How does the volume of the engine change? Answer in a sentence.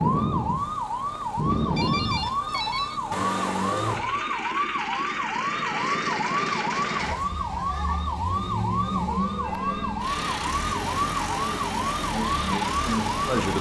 The volume of the engine stays about the same.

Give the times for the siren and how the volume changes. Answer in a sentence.
The siren can be heard from 0.0 to 13.5 s, at a steady volume.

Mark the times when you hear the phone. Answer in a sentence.
You can hear the phone from 1.8 to 3.0 s and from 9.1 to 10.1 s.